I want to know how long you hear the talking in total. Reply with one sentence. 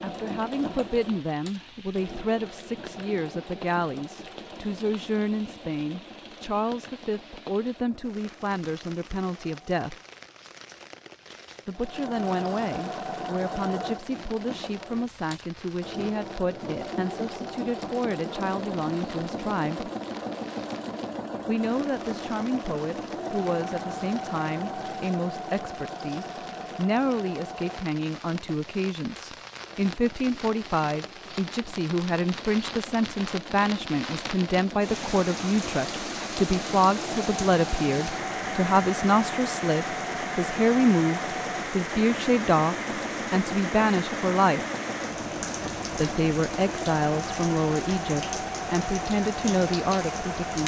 You can hear the talking for 46 seconds altogether.